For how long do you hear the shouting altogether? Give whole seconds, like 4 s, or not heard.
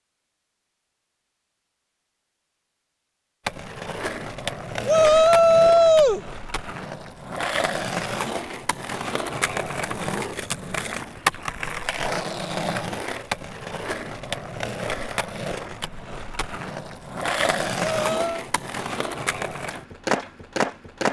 2 s.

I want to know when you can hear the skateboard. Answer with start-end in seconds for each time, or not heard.
3.5-21.0.